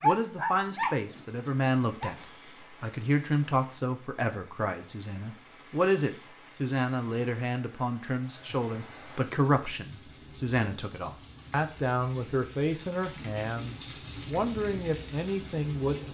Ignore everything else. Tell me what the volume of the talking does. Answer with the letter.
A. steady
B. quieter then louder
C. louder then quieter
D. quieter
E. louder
A.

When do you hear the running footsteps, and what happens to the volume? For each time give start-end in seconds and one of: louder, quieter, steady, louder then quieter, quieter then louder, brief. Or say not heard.
not heard.